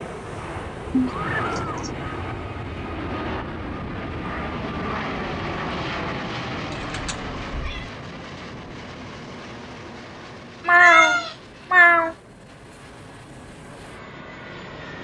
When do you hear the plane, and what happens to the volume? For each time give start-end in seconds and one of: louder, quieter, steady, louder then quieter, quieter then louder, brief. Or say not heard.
0.0-15.0 quieter.